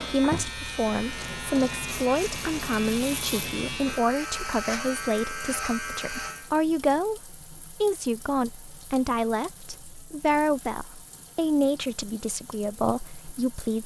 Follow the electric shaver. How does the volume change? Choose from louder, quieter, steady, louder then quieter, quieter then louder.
steady.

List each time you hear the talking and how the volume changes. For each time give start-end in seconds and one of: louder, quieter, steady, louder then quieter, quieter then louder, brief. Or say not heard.
0.1-13.8 steady.